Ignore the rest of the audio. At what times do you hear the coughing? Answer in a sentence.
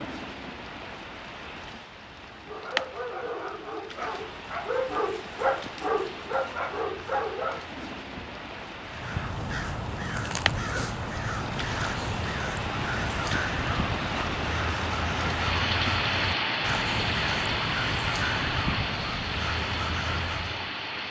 The coughing can't be heard in this clip.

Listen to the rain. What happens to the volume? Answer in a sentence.
The volume of the rain goes up.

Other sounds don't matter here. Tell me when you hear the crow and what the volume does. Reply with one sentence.
You can hear the crow from 8.8 to 20.8 s, at a steady volume.